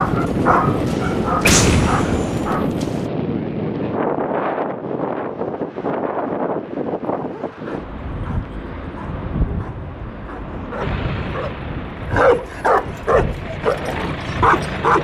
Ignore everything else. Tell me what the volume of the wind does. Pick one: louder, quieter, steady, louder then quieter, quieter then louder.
quieter.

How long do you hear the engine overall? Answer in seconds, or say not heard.
4 s.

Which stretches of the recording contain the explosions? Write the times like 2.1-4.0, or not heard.
1.4-2.5.